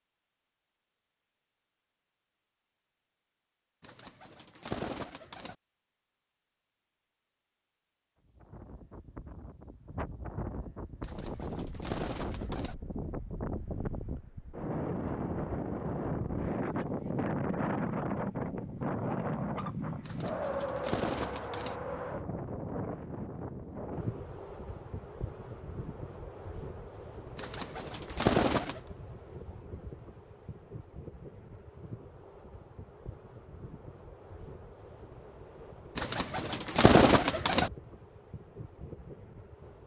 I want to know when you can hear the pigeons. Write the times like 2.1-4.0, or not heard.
3.8-5.5, 11.0-12.8, 20.1-21.8, 27.4-28.8, 36.0-37.7.